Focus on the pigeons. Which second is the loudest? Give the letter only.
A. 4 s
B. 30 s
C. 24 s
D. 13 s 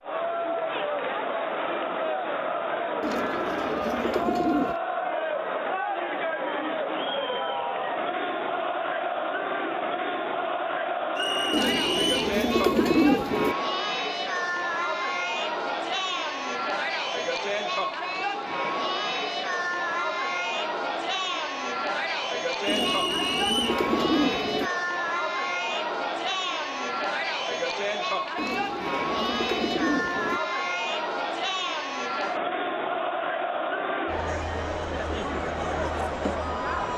D.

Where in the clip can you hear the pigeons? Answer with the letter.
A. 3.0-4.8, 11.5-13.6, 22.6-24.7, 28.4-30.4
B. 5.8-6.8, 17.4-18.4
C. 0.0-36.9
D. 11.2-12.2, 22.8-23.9
A.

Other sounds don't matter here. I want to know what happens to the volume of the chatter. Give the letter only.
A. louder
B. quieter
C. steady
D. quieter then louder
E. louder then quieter
C.